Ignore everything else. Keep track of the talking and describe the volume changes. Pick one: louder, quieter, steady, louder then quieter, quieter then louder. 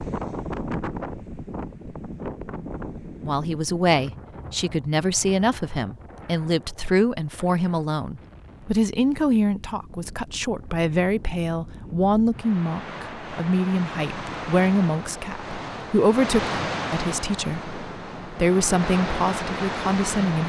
steady.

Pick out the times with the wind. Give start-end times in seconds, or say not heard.
0.0-20.4.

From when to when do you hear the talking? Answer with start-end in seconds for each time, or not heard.
3.2-20.4.